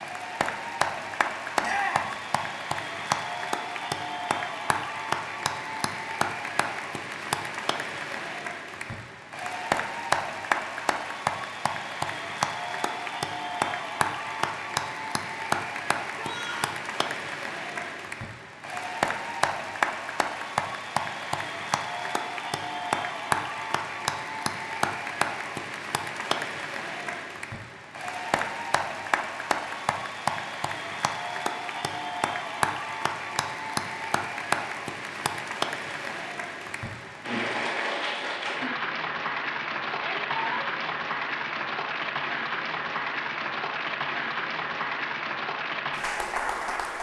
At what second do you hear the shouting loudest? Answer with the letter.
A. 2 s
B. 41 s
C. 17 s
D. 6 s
A.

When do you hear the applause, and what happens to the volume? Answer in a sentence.
The applause can be heard from 0.0 to 46.9 s, at a steady volume.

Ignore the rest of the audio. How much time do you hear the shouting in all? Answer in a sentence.
The shouting can be heard for 2 seconds in total.